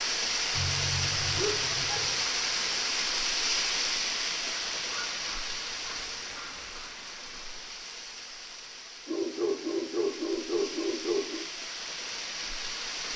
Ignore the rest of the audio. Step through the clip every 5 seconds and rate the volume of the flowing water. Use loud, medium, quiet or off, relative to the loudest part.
loud, medium, medium.